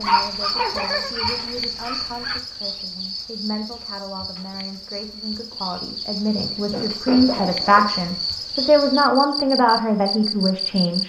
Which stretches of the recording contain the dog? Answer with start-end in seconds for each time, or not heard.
0.0-2.4.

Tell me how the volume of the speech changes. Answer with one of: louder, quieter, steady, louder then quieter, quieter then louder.
louder.